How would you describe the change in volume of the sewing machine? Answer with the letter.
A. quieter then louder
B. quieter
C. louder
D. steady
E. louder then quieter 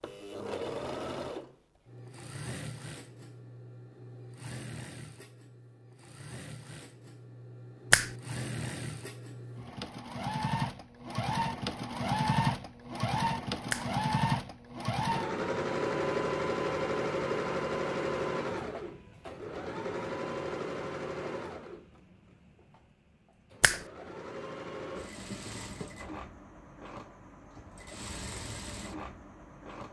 E.